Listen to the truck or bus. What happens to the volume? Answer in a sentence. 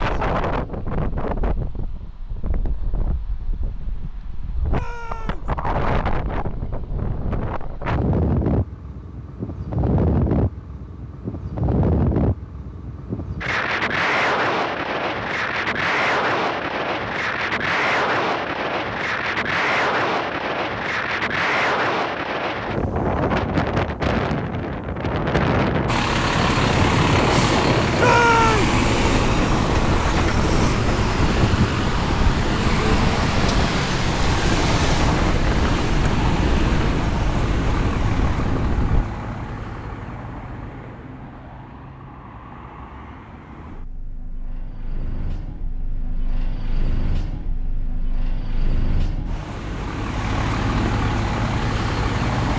The volume of the truck or bus goes down, then up.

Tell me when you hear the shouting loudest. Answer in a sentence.
The loudest moment of the shouting is at 28 seconds.